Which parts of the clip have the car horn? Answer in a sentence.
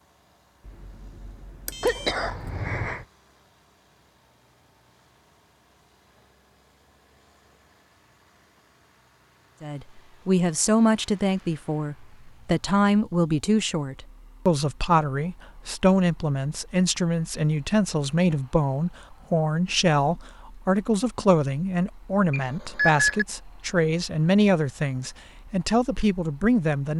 The car horn can't be heard in this clip.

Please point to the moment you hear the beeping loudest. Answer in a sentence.
The loudest moment of the beeping is at 23 seconds.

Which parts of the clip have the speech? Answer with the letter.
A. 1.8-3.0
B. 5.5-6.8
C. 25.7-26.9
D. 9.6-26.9
D.